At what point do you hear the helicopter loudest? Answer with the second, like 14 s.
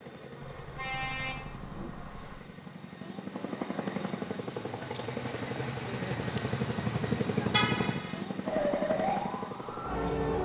7 s.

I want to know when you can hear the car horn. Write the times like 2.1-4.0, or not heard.
0.4-2.4, 7.5-8.2.